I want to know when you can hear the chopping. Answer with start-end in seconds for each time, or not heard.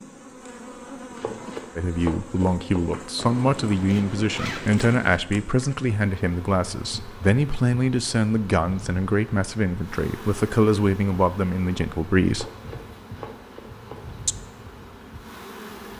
1.1-2.9, 12.3-14.0.